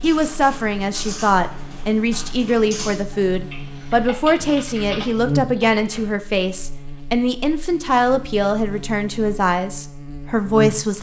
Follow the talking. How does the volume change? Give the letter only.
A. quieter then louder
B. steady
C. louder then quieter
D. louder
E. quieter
B.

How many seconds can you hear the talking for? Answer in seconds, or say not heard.
11 s.